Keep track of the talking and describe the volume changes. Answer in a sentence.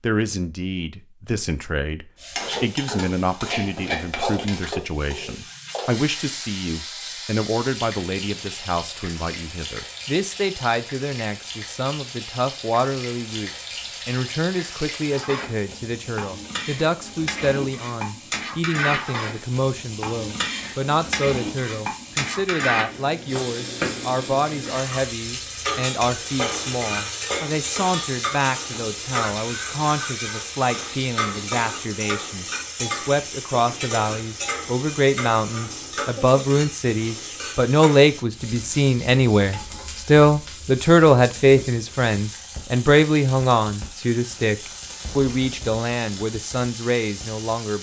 The volume of the talking goes up.